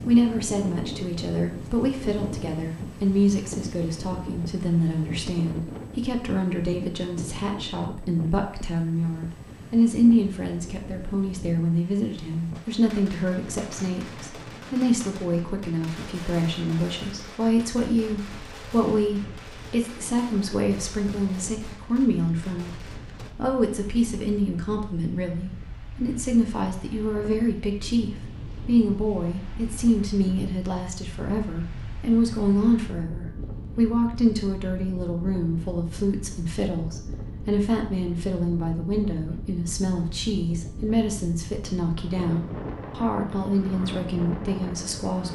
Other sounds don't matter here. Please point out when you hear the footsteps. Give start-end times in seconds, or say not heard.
not heard.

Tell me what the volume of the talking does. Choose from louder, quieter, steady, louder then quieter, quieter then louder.
steady.